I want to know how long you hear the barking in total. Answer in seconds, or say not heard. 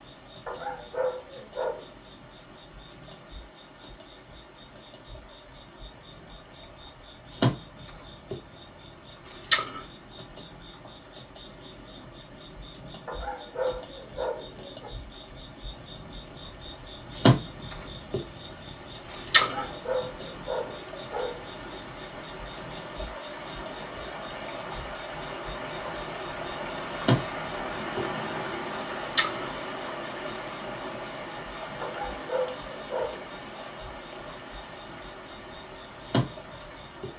7 s.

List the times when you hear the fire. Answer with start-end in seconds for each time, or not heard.
not heard.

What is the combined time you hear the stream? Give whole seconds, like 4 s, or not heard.
37 s.